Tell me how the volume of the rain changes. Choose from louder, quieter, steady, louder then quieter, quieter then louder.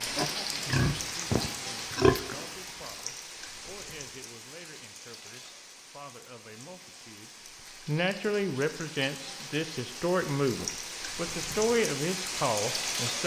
quieter then louder.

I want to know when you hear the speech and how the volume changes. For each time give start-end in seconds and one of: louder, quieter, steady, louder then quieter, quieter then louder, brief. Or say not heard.
0.0-13.2 louder.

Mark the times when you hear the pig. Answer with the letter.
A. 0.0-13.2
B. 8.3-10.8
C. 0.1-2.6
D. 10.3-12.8
C.